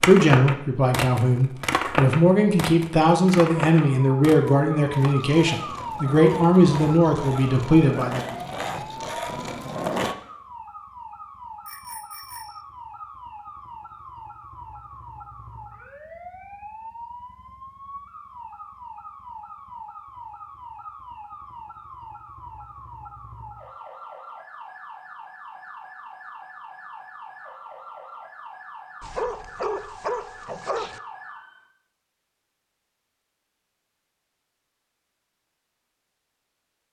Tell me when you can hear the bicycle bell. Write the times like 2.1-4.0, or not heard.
11.7-12.7.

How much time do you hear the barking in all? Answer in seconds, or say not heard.
2 s.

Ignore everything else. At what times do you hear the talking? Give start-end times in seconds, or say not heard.
0.0-8.4.